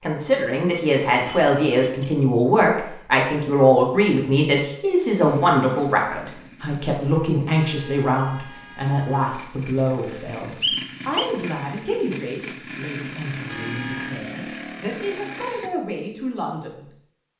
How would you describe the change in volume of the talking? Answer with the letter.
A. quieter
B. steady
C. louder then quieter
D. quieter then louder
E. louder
A.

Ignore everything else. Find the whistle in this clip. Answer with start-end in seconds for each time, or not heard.
10.6-11.3.